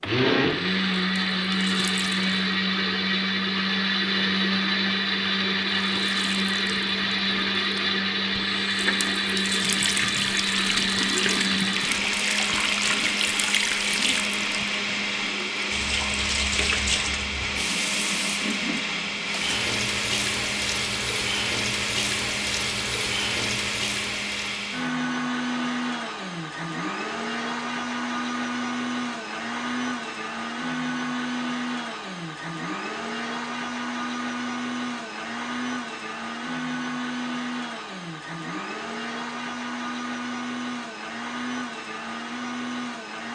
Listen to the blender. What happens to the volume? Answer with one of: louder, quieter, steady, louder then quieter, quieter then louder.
quieter.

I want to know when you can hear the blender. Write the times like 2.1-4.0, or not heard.
0.0-43.3.